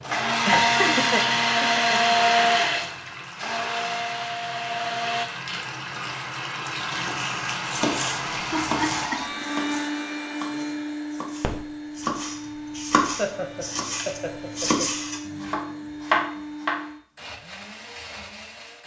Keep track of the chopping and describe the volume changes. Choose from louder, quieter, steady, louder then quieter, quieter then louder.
quieter then louder.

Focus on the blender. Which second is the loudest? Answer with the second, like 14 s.
2 s.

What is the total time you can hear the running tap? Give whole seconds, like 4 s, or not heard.
9 s.